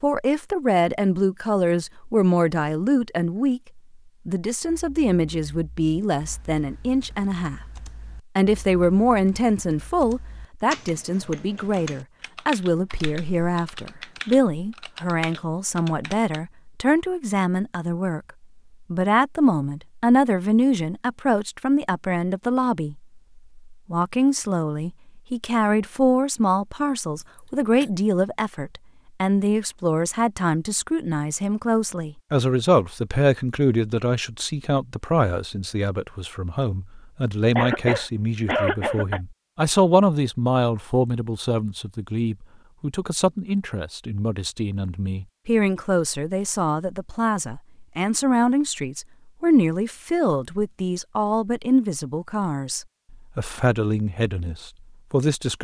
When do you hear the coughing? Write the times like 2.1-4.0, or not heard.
12.9-14.2, 27.1-27.9, 37.5-39.2.